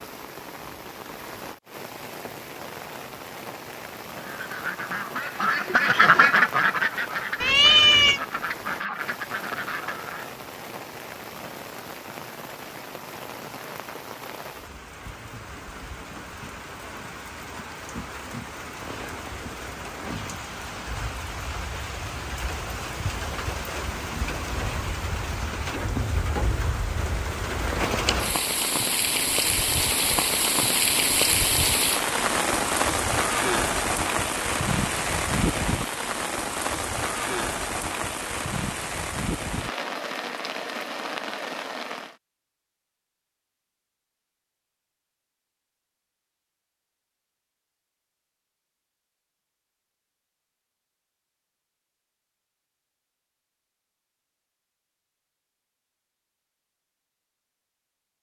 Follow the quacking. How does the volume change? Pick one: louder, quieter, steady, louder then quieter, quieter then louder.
louder then quieter.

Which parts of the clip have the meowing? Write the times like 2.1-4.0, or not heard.
7.4-8.2.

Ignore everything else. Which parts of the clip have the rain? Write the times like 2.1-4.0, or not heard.
0.0-42.1.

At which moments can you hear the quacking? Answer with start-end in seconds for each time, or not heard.
4.2-10.3.